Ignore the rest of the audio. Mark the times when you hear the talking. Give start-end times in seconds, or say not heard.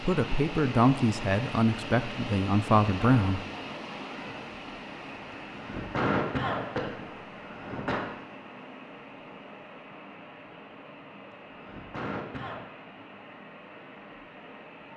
0.0-3.4.